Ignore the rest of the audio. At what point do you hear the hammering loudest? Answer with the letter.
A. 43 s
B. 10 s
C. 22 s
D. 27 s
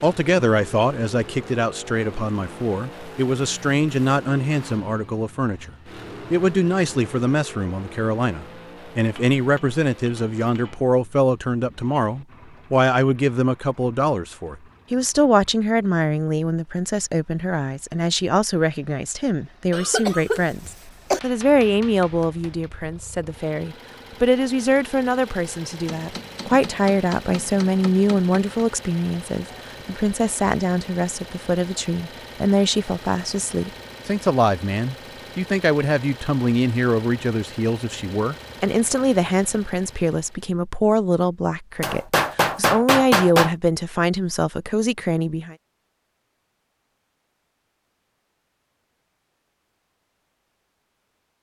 A.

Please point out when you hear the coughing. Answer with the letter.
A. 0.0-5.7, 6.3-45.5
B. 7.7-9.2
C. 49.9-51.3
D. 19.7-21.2
D.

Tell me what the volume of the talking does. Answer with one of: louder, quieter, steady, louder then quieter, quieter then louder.
steady.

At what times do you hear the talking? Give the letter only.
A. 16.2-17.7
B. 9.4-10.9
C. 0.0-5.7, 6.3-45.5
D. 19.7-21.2
C.